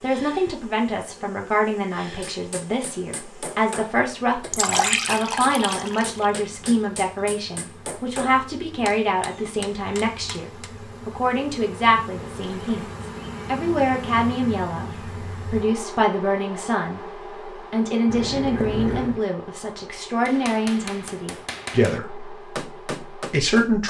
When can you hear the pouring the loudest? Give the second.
5 s.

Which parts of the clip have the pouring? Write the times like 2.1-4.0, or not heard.
4.5-6.2, 12.3-12.9, 18.1-19.2.